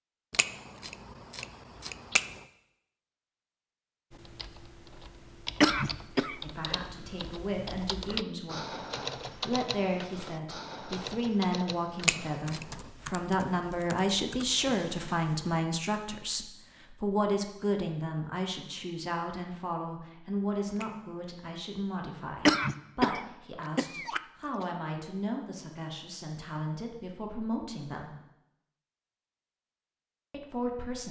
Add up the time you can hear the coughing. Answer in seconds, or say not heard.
3 s.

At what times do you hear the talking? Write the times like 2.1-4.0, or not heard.
6.4-28.1, 30.3-31.0.